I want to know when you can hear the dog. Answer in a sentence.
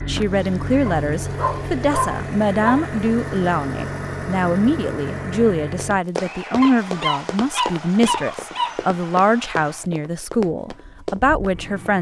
The dog can be heard from 0.8 to 2.9 s and from 6.6 to 8.8 s.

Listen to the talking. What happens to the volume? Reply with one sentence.
The volume of the talking stays about the same.